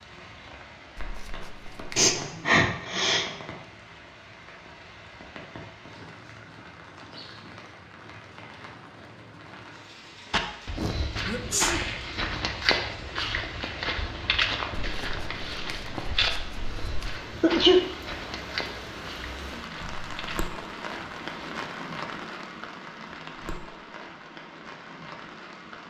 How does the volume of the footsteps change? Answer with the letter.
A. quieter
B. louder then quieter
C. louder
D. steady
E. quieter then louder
A.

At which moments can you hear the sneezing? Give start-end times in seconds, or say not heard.
1.9-3.3, 10.8-11.8, 17.4-17.9.